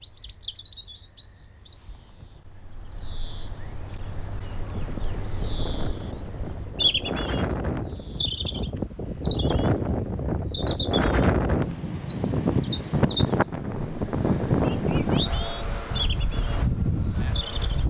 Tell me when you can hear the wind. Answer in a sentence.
The wind can be heard from 4.7 to 17.8 s.